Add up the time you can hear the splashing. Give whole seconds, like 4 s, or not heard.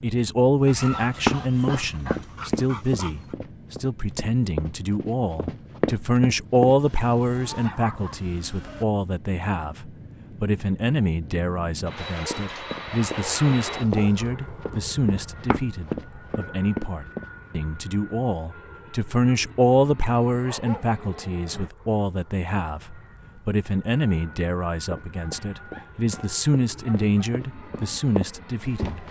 not heard.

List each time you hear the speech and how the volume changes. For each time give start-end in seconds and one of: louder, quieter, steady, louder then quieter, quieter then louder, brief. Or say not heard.
0.0-29.0 steady.